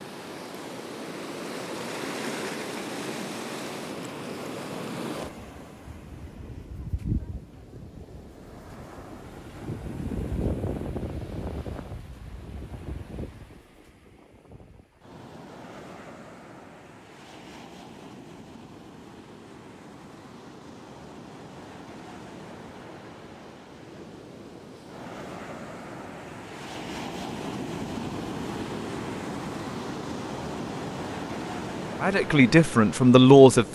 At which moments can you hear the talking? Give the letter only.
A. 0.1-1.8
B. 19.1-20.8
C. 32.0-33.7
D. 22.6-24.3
C.